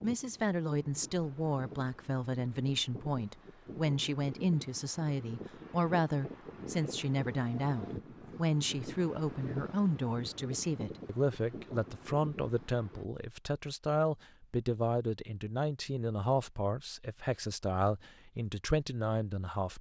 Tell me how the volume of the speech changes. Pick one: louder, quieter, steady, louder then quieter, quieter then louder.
steady.